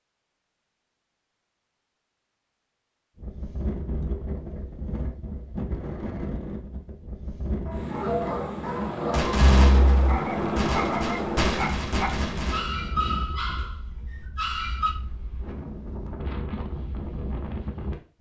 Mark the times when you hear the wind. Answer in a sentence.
You can hear the wind from 3.1 to 18.1 s.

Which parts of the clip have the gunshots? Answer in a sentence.
The gunshots can be heard from 9.1 to 12.6 s.